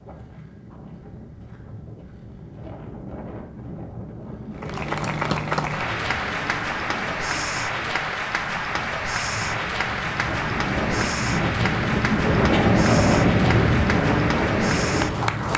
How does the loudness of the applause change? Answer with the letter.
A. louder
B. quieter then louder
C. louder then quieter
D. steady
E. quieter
D.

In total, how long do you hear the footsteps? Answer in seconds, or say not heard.
not heard.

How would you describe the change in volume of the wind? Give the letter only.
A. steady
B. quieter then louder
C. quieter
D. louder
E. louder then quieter
D.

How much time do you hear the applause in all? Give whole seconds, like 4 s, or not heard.
11 s.